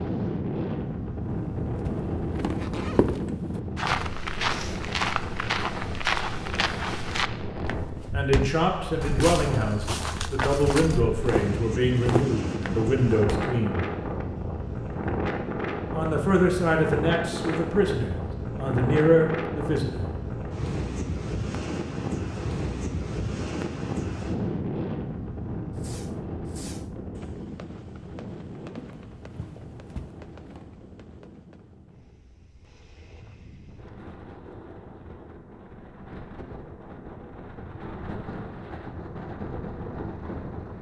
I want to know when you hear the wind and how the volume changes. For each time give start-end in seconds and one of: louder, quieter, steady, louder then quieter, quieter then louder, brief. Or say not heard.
0.0-40.7 quieter.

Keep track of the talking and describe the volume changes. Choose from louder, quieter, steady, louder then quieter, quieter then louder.
steady.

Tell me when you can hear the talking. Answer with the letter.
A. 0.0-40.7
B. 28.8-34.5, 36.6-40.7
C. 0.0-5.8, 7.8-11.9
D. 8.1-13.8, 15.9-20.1
D.